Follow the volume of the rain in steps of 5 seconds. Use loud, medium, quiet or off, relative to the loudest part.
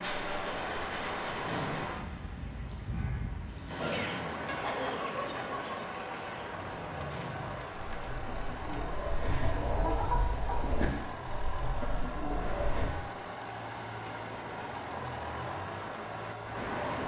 loud, loud, medium, loud.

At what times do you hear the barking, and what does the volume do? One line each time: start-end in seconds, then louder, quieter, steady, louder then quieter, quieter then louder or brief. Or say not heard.
not heard.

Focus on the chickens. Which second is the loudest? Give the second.
10 s.